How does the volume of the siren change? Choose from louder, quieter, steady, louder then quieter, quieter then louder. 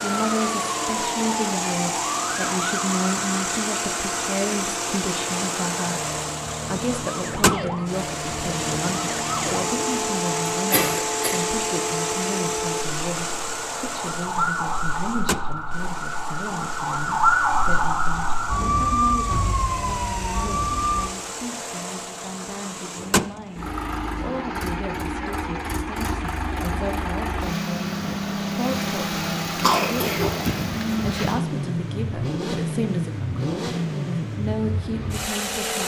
louder.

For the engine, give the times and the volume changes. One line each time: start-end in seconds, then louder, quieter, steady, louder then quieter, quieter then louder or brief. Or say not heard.
0.0-35.8 quieter then louder.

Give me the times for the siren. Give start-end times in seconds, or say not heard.
0.1-21.1.